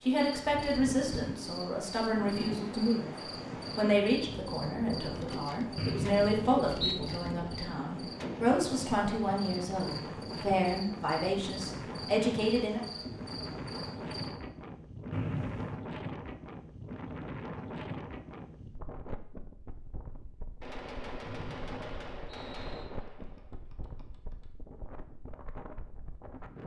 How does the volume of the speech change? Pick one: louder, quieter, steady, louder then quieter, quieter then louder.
steady.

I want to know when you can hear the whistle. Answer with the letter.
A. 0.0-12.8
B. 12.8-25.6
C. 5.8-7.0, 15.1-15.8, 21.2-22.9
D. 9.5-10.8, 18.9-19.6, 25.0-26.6
C.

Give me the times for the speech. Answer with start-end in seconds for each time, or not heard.
0.0-12.8.